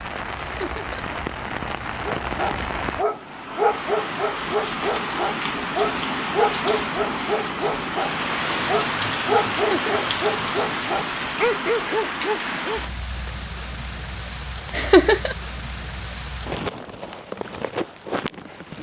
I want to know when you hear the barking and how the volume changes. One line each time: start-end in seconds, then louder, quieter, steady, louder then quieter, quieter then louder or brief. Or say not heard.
2.2-12.8 steady.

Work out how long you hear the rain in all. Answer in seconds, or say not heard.
19 s.